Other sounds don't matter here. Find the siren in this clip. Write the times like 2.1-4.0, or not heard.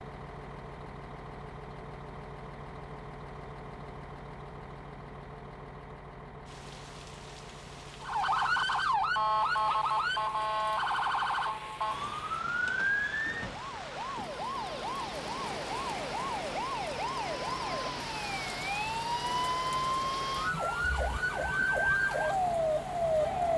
8.0-23.5.